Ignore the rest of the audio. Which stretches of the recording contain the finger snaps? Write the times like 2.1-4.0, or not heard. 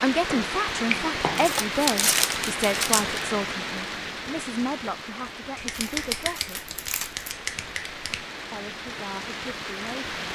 0.3-1.5, 5.5-8.2.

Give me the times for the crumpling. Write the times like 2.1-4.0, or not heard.
1.4-3.2, 5.7-7.3.